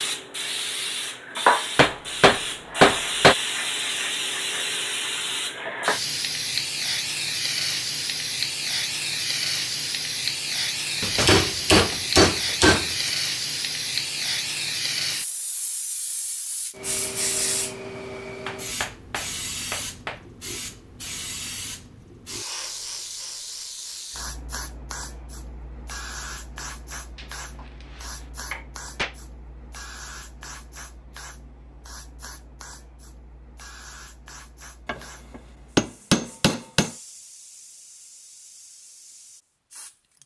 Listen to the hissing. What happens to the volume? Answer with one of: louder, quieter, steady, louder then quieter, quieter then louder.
quieter.